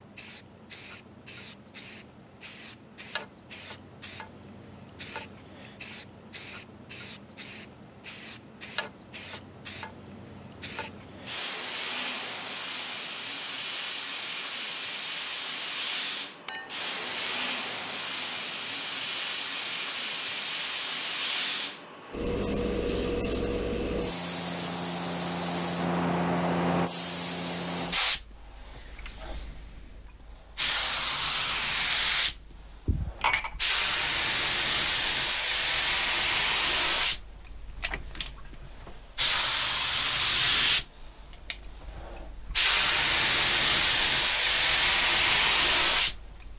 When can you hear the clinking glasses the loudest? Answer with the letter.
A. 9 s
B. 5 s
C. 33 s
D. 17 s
C.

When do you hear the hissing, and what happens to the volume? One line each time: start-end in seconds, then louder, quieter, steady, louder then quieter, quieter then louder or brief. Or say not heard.
0.0-46.5 louder.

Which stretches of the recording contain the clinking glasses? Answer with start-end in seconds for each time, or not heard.
16.4-16.9, 32.9-33.5.